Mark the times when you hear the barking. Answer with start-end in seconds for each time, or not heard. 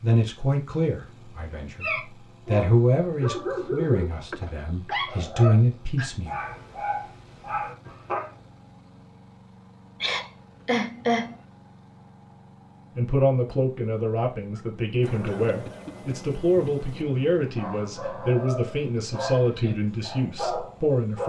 1.5-8.3, 17.6-21.2.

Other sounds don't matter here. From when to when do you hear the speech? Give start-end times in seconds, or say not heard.
0.0-6.3, 12.9-21.2.